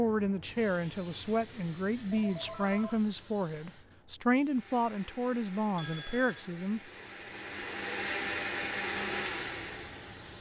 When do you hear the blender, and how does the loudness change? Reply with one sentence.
You can hear the blender from 4.5 to 10.3 s, getting louder.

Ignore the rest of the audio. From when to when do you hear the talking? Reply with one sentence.
The talking can be heard from 0.0 to 6.8 s.